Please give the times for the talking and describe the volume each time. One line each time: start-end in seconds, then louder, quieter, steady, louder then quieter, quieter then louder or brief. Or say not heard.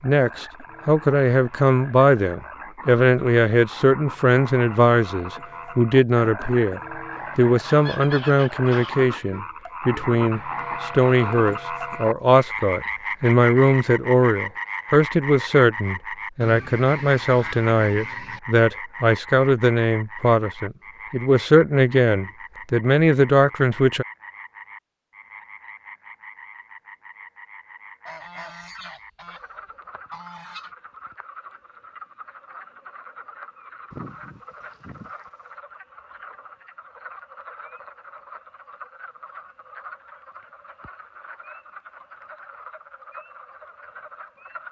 0.0-24.1 steady.